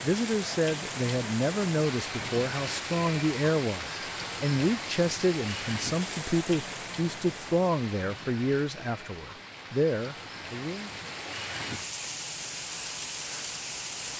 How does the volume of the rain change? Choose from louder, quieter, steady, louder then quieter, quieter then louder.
quieter then louder.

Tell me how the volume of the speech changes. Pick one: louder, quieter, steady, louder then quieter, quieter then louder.
steady.